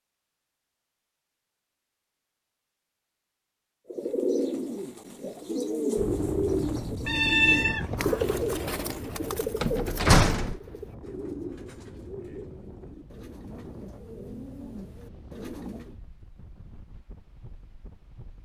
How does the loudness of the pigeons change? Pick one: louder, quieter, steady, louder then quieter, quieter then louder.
quieter.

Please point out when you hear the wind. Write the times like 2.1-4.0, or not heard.
6.0-18.4.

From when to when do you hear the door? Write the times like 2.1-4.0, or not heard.
9.6-10.6.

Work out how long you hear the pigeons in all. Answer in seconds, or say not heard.
12 s.